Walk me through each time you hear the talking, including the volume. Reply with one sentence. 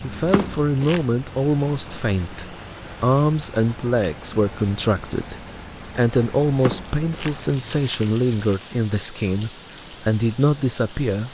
You can hear the talking from 0.0 to 11.3 s, at a steady volume.